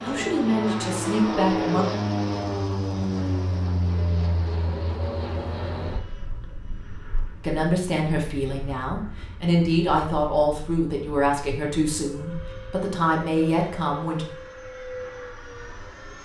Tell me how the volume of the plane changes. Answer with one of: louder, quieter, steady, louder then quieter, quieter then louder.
quieter then louder.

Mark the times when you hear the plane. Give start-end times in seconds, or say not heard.
0.0-16.1.